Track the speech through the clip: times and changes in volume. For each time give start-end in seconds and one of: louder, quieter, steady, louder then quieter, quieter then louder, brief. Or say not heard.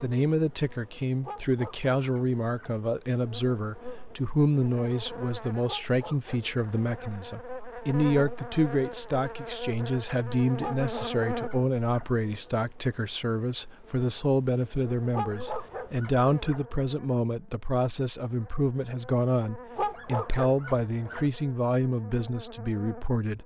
0.0-23.4 steady.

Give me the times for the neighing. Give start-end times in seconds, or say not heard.
not heard.